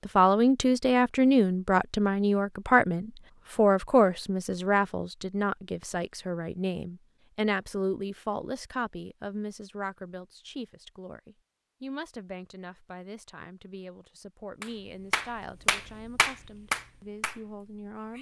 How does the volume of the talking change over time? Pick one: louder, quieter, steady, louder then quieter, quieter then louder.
quieter.